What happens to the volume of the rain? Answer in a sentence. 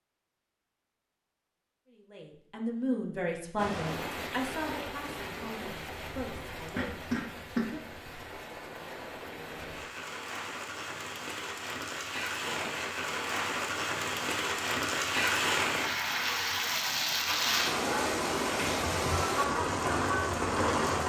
The volume of the rain goes up.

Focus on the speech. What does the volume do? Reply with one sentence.
The loudness of the speech goes down.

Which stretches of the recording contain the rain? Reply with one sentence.
The rain can be heard from 3.5 to 21.0 s.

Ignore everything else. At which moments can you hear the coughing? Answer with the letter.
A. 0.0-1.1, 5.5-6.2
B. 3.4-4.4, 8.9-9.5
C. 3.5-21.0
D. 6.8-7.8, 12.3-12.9
D.